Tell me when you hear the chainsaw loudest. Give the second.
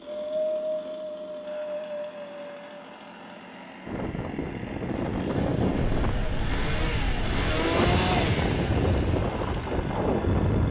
8 s.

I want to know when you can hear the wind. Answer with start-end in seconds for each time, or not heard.
0.0-10.6.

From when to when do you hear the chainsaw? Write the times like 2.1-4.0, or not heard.
0.0-10.6.